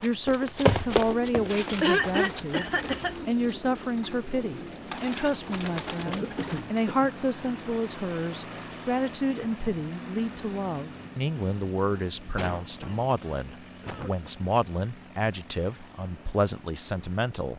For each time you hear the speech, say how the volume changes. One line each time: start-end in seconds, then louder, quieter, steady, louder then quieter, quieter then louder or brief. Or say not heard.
0.0-17.5 steady.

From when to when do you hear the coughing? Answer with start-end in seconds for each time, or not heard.
1.8-3.1, 6.0-7.1, 12.3-14.3.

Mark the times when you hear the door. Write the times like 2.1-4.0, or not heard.
not heard.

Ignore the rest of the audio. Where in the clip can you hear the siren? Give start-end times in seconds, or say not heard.
not heard.